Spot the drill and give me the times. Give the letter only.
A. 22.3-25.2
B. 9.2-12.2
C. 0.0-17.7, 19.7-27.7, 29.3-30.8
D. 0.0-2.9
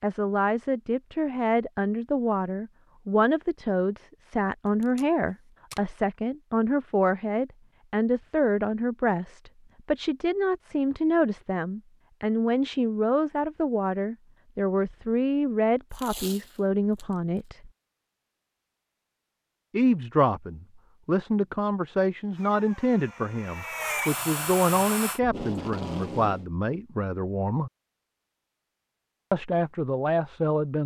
A.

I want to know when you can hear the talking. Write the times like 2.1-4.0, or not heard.
0.0-17.7, 19.7-27.7, 29.3-30.8.